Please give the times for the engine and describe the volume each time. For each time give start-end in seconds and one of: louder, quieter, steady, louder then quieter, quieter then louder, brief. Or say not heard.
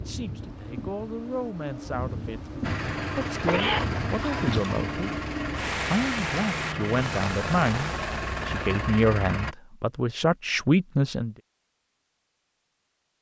2.6-9.6 steady.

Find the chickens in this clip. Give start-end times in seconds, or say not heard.
not heard.